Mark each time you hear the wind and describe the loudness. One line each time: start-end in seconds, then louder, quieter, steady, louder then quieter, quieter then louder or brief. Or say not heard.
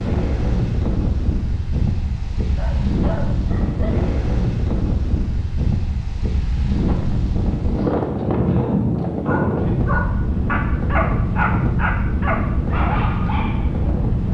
0.0-14.2 steady.